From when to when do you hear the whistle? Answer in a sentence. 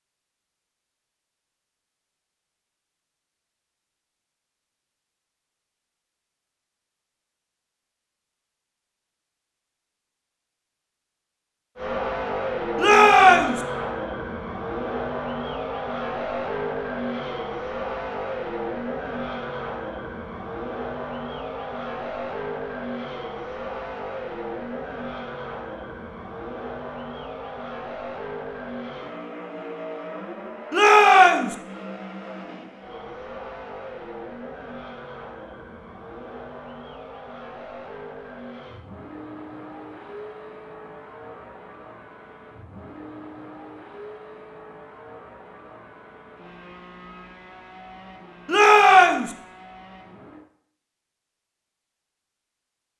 You can't hear the whistle here.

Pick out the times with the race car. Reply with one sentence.
You can hear the race car from 11.8 to 50.5 s.